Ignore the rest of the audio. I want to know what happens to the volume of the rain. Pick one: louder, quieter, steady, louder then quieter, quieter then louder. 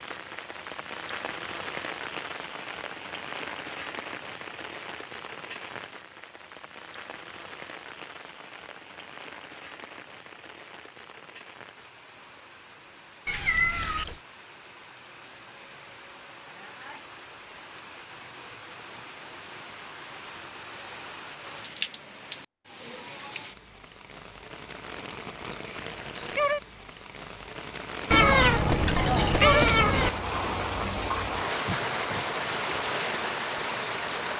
quieter then louder.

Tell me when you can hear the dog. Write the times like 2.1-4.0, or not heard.
not heard.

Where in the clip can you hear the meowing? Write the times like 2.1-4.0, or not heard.
13.2-14.2, 28.1-30.1.